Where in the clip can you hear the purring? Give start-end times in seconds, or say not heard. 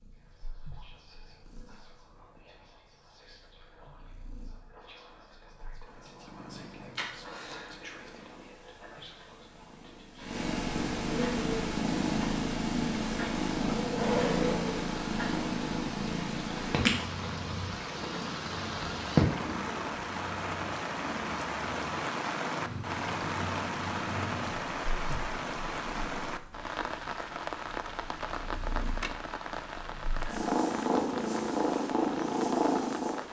0.0-33.2.